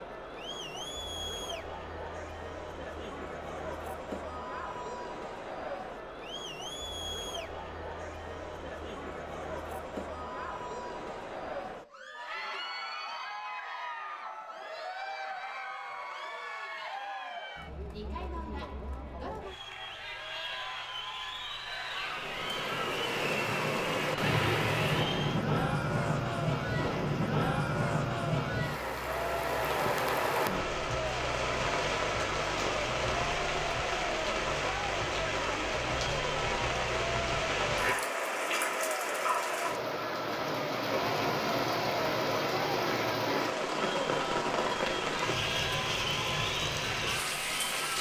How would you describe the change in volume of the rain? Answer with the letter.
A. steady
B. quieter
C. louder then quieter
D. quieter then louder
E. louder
A.